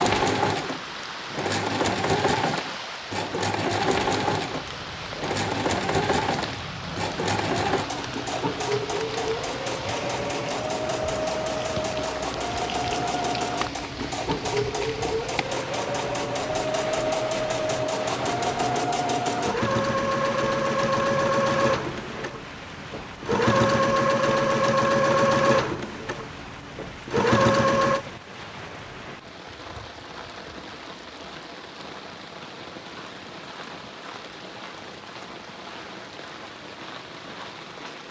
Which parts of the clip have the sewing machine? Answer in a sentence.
You can hear the sewing machine from 0.0 to 28.1 s.